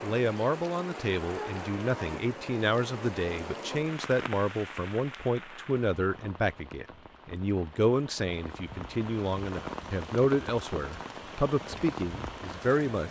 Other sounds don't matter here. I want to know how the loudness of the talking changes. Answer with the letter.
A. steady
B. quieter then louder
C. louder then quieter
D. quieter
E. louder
A.